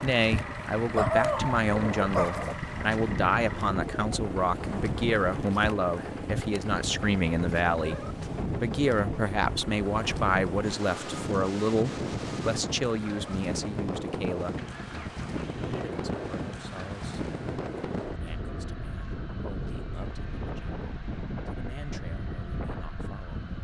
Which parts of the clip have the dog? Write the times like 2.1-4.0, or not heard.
0.9-2.5.